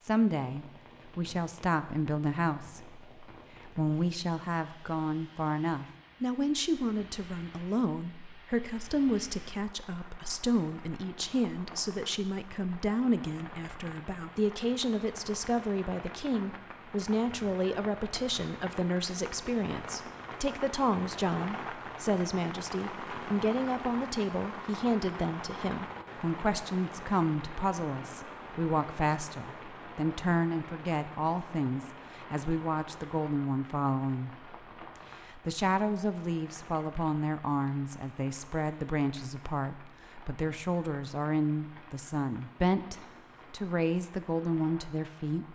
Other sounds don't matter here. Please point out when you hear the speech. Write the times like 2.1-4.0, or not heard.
0.1-34.5, 35.2-45.5.